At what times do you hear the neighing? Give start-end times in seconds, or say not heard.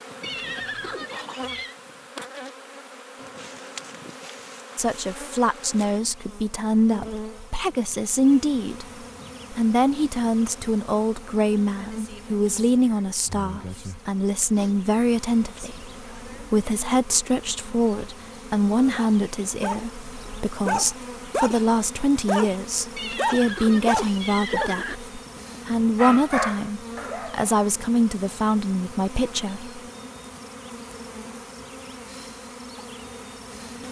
0.2-1.8, 22.9-25.0.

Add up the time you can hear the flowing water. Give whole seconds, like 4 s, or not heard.
not heard.